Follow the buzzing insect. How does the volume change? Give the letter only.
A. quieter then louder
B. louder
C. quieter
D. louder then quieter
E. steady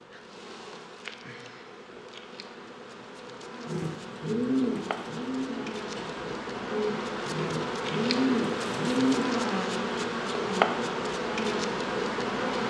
B.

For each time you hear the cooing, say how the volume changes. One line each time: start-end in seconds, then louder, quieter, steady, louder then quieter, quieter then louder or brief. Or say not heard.
3.6-9.3 quieter then louder.